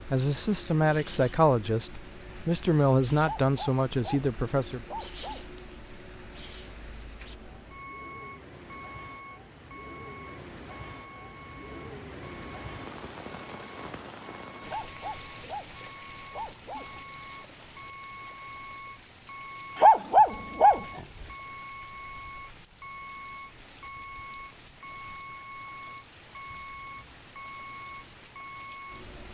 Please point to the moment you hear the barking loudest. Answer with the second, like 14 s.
20 s.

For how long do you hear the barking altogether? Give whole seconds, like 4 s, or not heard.
6 s.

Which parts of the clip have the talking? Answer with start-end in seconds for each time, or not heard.
0.0-4.8.